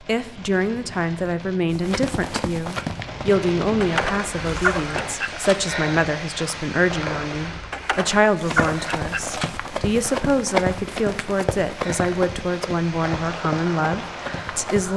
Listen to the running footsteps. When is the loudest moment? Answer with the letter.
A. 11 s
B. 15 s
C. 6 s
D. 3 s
A.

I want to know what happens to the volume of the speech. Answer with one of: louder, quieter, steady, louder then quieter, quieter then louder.
steady.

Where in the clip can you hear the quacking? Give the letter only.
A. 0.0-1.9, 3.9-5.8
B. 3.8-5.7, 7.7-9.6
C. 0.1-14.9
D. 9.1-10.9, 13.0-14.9
B.